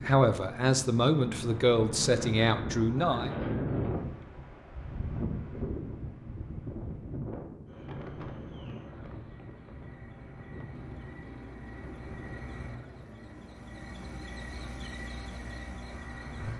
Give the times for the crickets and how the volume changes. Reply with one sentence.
The crickets can be heard from 7.7 to 16.5 s, getting louder.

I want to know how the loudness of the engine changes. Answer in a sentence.
The loudness of the engine stays about the same.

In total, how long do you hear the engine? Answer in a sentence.
You can hear the engine for 6 seconds altogether.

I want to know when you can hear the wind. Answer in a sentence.
You can hear the wind from 0.0 to 12.4 s.